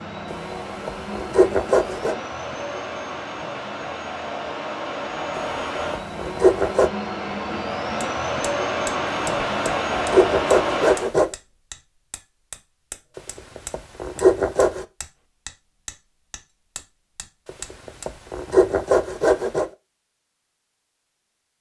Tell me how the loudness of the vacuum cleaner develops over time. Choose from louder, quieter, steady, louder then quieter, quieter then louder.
louder.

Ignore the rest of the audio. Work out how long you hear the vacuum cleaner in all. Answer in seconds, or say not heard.
11 s.